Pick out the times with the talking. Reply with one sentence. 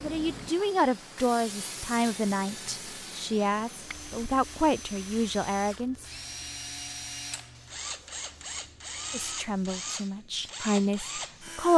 You can hear the talking from 0.0 to 6.0 s and from 9.1 to 11.7 s.